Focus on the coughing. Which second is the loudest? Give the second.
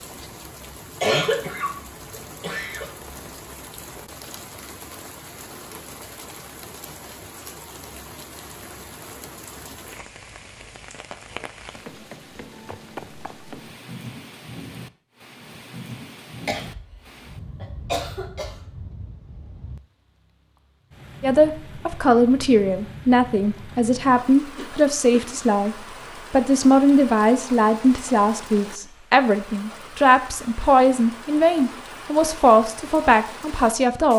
1 s.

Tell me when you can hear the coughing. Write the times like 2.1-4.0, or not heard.
1.0-2.9, 16.4-16.9, 17.6-18.6, 24.4-25.2.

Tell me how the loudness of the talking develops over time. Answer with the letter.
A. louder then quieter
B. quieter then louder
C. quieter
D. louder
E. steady
E.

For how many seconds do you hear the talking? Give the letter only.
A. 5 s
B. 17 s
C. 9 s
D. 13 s
D.